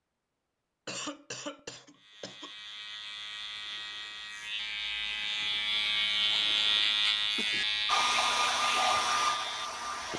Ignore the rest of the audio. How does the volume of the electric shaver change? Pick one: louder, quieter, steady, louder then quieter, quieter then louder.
louder then quieter.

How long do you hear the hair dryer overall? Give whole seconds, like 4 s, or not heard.
2 s.